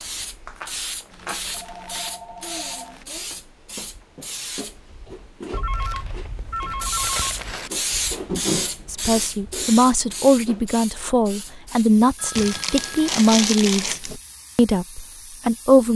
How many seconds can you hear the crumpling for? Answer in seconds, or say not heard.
6 s.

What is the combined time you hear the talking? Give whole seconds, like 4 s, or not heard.
7 s.